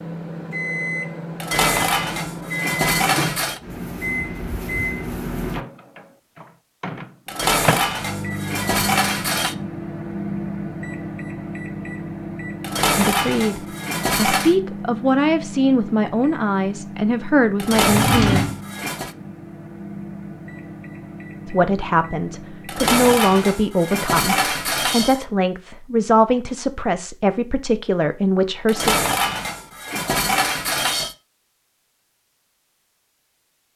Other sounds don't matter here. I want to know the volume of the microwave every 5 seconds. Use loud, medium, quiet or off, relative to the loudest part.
loud, loud, loud, medium, medium, off, off.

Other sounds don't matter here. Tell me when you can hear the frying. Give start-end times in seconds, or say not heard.
not heard.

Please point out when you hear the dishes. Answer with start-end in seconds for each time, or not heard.
1.4-3.6, 7.2-9.6, 12.6-14.6, 17.6-19.1, 22.6-25.2, 28.6-31.1.